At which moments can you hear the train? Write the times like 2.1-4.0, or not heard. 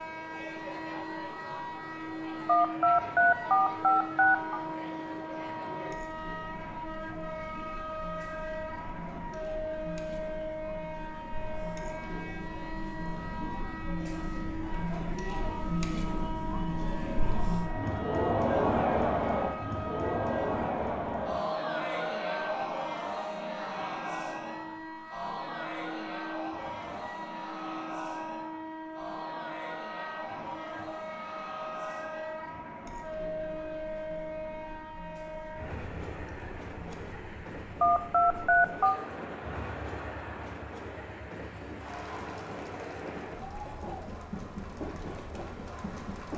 0.0-46.3.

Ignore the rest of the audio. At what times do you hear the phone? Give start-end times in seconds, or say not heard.
2.5-4.6, 37.8-39.0.